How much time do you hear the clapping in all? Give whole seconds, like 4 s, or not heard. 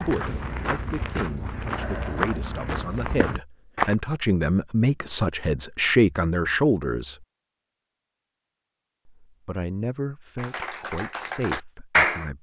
2 s.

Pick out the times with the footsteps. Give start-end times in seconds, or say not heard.
0.0-4.0.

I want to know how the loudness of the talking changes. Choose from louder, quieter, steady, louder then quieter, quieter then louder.
louder then quieter.